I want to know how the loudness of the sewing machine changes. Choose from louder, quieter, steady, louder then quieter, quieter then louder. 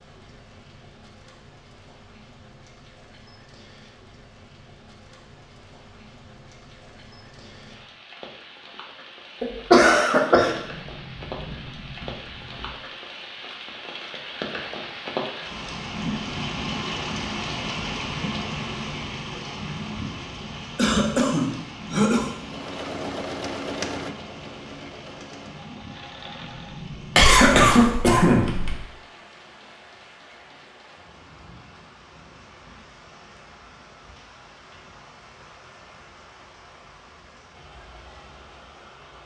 quieter.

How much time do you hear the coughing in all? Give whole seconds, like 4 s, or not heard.
4 s.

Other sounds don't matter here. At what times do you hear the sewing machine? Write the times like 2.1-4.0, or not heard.
22.4-26.9.